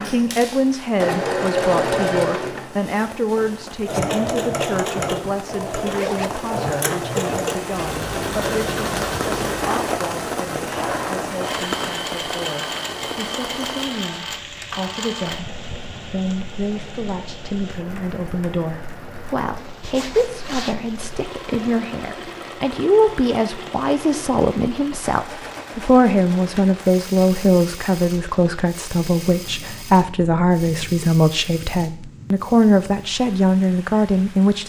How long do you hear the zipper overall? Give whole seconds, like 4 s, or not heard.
2 s.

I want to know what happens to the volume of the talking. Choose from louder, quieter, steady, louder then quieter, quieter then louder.
quieter then louder.